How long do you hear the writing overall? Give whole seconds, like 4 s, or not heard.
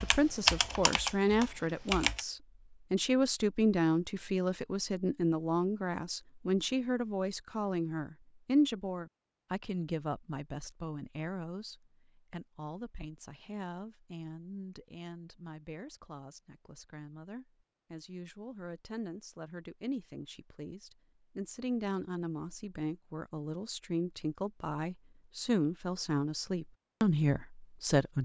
not heard.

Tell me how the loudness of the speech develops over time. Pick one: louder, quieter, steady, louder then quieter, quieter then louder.
quieter then louder.